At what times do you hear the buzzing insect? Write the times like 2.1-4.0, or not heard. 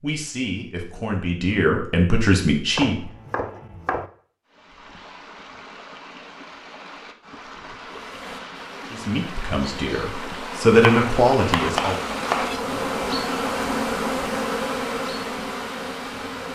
7.9-16.4.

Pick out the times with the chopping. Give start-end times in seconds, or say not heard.
2.8-4.1, 10.7-12.7.